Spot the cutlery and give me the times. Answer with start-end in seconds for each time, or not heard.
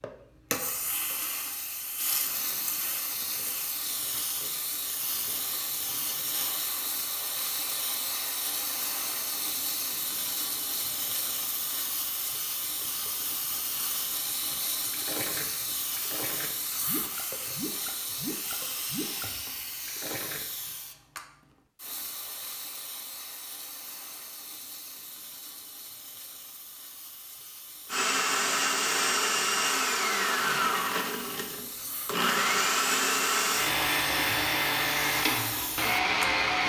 not heard.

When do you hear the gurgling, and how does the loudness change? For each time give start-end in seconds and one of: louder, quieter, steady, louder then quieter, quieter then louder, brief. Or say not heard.
14.9-20.8 steady.